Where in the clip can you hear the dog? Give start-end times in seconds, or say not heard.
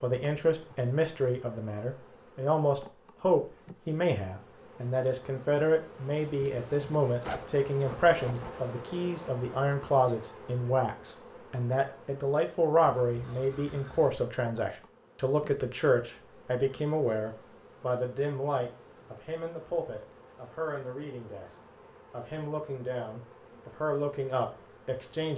not heard.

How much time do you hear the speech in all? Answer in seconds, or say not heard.
25 s.